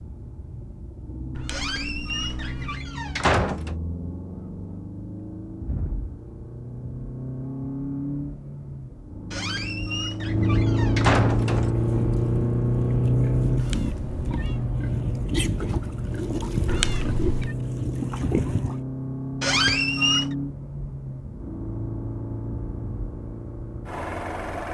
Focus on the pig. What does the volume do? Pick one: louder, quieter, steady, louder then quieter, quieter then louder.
louder.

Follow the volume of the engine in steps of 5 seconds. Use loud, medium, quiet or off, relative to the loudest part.
quiet, medium, loud, medium, medium.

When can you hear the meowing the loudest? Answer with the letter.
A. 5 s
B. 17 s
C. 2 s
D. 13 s
B.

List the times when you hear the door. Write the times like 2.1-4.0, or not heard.
1.5-3.8, 9.3-11.7, 19.4-20.4.